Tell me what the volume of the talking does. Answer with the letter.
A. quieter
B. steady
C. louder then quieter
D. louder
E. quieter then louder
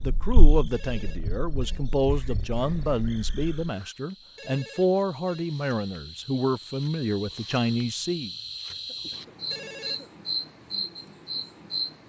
B.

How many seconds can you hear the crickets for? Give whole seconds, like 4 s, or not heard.
12 s.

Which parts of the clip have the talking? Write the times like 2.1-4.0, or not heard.
0.0-8.3.